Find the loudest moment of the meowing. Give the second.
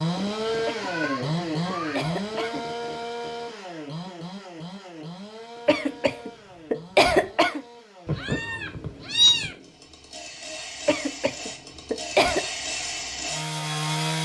9 s.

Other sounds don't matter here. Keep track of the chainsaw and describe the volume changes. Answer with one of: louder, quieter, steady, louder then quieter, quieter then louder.
quieter then louder.